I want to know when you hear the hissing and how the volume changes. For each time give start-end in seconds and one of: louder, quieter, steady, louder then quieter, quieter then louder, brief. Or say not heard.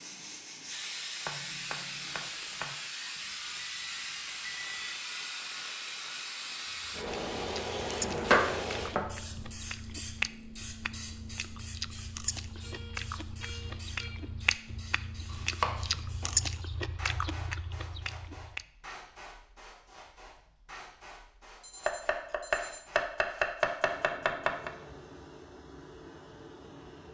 0.0-27.1 quieter.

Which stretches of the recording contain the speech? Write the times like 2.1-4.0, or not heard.
not heard.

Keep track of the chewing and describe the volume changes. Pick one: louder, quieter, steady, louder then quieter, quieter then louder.
louder.